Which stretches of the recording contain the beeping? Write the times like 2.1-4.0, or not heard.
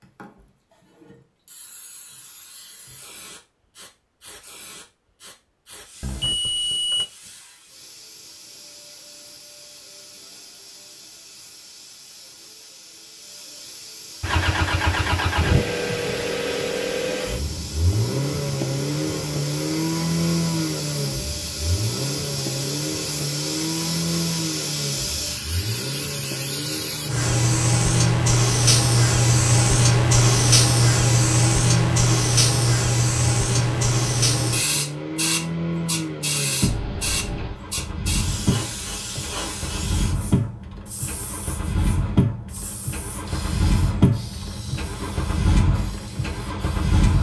6.0-7.0, 36.6-37.6.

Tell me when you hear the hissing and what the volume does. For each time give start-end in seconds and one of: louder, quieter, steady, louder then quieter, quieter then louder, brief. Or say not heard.
0.0-47.1 louder then quieter.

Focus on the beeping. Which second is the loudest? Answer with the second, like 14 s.
7 s.